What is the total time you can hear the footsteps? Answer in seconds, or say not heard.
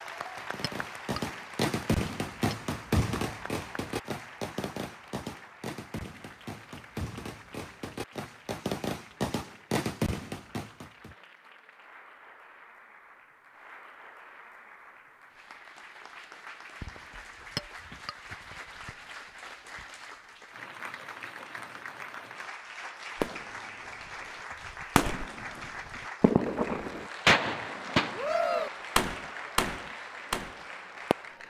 not heard.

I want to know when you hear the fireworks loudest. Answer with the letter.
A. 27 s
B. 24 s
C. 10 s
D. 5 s
A.